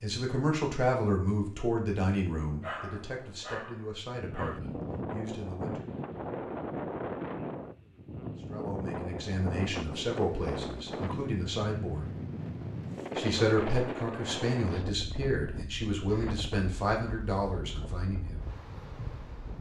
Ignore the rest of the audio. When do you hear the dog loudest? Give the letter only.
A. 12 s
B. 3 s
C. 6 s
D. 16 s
B.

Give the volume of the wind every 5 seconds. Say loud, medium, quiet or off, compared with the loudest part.
medium, loud, loud, medium.